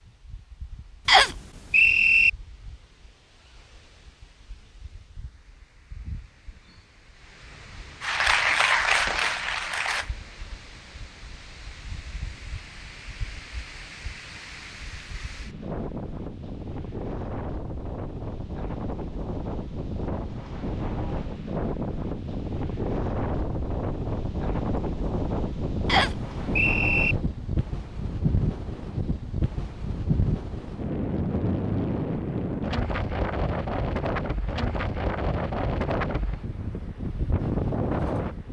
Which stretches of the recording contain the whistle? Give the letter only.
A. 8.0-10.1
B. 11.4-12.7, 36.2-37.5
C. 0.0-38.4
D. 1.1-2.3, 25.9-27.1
D.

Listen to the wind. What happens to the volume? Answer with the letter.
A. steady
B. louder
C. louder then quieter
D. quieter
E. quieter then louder
B.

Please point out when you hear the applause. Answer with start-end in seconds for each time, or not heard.
8.0-10.1.